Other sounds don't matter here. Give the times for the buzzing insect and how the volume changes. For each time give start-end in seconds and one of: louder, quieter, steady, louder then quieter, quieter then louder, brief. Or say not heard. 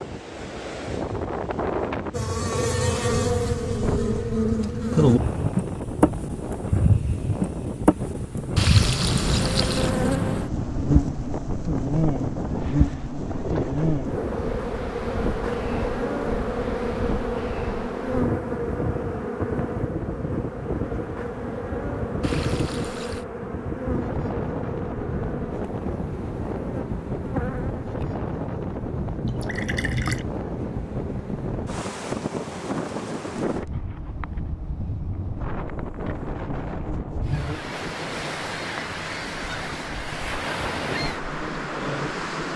2.1-42.3 quieter.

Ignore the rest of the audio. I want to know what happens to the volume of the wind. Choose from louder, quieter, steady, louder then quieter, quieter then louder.
steady.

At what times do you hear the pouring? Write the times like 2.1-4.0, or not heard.
8.6-9.9, 22.2-23.2, 29.2-30.2.